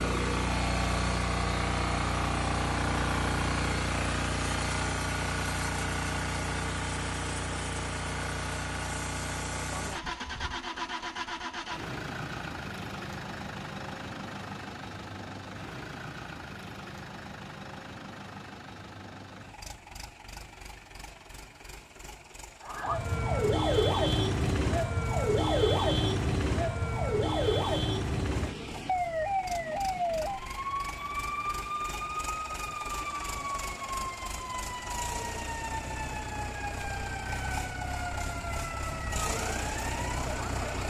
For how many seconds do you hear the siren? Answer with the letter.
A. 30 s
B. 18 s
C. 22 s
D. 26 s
B.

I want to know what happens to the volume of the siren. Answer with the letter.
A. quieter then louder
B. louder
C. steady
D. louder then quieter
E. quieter
E.